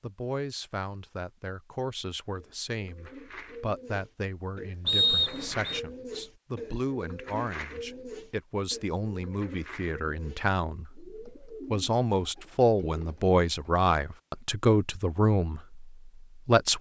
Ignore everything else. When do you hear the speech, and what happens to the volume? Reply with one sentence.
You can hear the speech from 0.0 to 16.7 s, getting louder.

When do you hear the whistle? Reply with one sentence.
The whistle can be heard from 4.8 to 5.8 s.